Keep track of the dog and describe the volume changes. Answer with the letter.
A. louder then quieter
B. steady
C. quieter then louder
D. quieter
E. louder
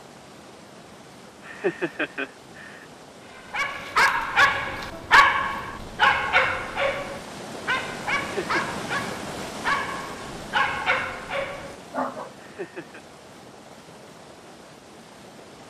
D.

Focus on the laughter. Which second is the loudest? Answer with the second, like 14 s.
2 s.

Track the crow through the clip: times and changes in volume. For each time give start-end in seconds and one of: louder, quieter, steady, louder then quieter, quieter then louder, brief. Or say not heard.
not heard.